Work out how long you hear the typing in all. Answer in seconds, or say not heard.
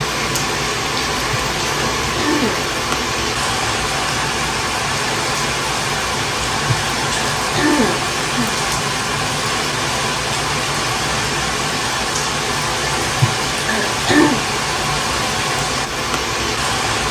not heard.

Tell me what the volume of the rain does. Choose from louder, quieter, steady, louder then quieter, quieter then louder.
steady.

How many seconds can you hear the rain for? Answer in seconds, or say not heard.
17 s.